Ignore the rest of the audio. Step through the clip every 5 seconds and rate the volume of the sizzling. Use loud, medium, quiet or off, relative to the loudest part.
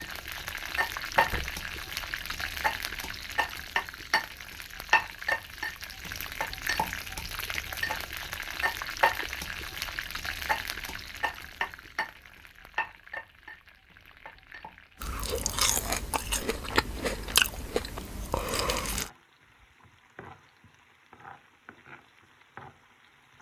loud, loud, medium, quiet, quiet.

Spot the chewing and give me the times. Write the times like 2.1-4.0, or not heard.
15.0-19.1.